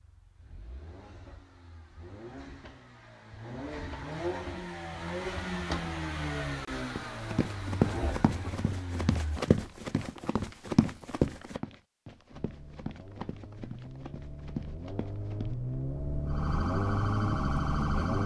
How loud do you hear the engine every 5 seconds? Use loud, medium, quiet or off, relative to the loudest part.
medium, loud, quiet, loud.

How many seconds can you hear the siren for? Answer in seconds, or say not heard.
2 s.